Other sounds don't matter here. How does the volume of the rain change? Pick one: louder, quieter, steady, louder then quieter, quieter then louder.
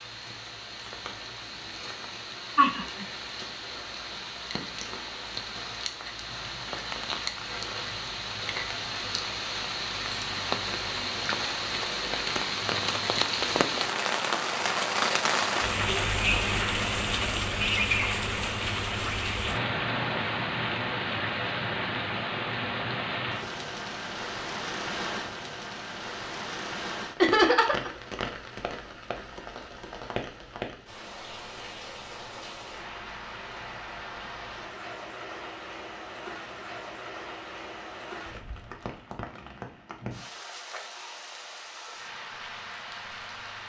louder then quieter.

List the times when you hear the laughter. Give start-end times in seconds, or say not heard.
2.5-3.0, 27.2-27.9.